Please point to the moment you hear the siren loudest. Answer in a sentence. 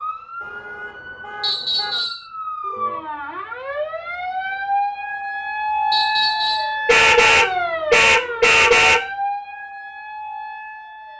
The volume of the siren peaks at 6 seconds.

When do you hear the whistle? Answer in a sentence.
You can hear the whistle from 1.4 to 2.2 s and from 5.9 to 6.8 s.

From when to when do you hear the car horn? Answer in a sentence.
The car horn can be heard from 0.4 to 2.0 s and from 6.8 to 9.1 s.